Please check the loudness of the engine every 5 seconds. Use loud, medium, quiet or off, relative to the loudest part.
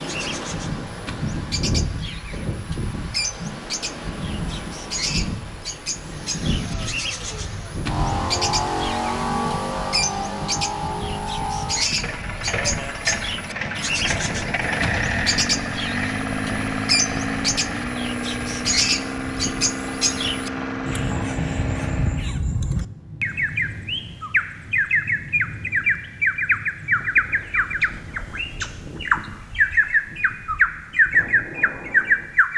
off, loud, loud, loud, loud, off, off.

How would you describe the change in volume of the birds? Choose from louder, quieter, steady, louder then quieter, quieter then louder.
louder.